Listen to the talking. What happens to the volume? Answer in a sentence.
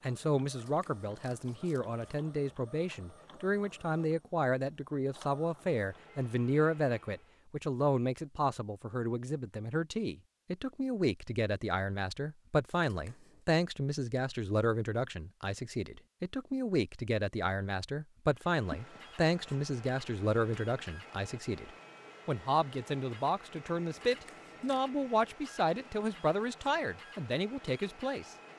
The loudness of the talking stays about the same.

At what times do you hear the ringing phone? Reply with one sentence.
The ringing phone can be heard from 18.2 to 19.0 s.